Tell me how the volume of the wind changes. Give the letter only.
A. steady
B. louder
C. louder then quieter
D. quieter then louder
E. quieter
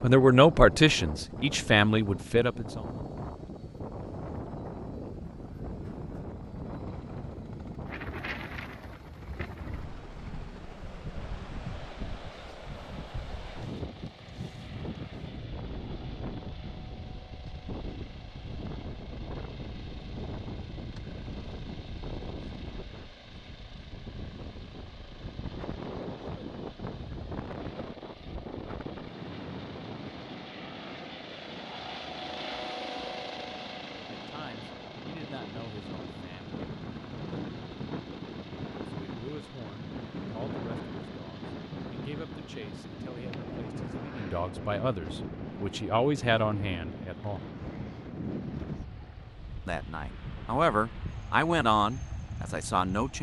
A.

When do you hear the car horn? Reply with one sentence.
You can't hear the car horn here.